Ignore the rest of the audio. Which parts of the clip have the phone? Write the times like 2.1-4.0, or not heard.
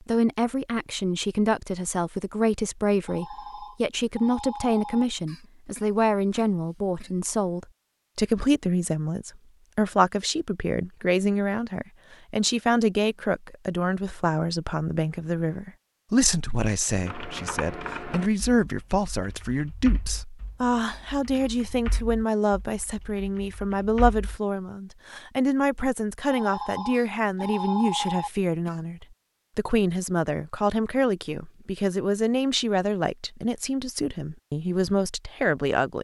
3.0-5.0, 26.3-28.3.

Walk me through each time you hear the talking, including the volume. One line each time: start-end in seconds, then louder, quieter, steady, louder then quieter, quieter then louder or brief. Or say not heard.
0.0-36.0 steady.